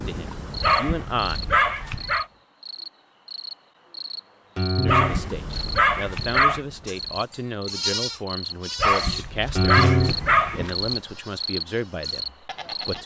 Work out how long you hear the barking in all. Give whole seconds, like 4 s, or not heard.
5 s.